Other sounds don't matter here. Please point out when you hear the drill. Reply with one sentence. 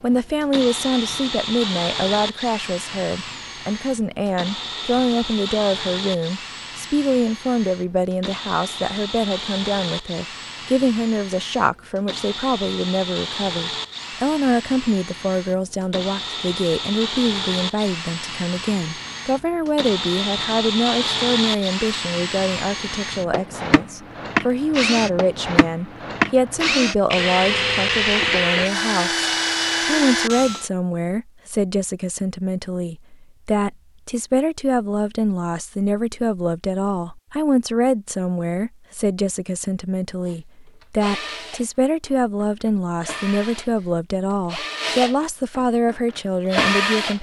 The drill can be heard from 0.1 to 30.7 s and from 40.2 to 47.1 s.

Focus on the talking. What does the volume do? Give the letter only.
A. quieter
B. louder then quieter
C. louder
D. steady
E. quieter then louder
D.